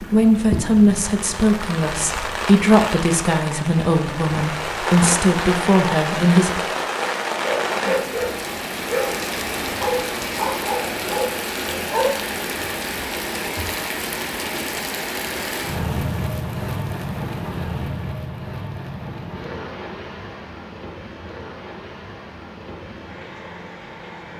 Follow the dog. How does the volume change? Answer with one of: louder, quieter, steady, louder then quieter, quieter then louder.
steady.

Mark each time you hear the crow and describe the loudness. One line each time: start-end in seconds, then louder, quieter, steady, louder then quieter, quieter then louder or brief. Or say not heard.
not heard.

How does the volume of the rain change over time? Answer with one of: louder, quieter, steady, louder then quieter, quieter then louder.
quieter.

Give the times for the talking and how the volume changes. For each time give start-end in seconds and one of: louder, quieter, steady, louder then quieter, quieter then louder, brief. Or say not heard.
0.0-6.7 steady.